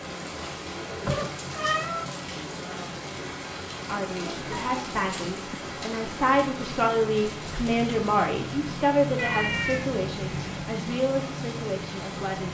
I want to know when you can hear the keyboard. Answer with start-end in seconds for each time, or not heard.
not heard.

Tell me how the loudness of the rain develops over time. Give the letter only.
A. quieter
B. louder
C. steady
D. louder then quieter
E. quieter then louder
C.